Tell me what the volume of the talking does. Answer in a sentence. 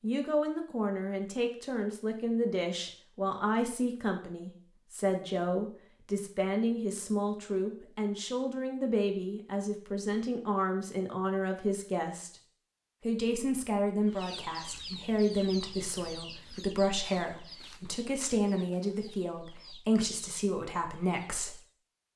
The loudness of the talking stays about the same.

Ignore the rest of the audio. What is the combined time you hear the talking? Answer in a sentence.
The talking can be heard for 21 seconds in total.